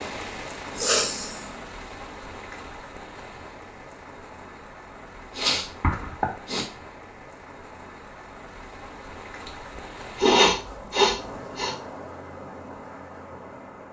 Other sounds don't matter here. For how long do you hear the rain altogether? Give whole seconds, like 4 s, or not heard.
14 s.